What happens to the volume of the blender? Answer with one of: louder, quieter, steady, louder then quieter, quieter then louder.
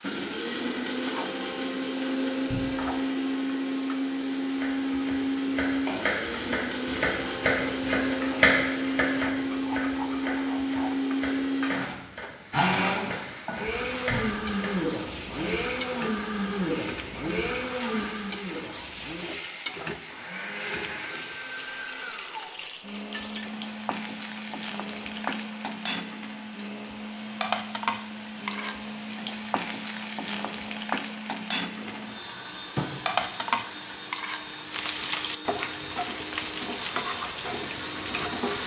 quieter.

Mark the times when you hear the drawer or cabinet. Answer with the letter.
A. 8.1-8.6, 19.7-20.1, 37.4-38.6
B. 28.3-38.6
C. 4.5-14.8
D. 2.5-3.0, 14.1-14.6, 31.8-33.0
D.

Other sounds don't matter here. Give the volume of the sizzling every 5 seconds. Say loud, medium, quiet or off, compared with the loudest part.
medium, medium, medium, medium, medium, loud, loud, loud.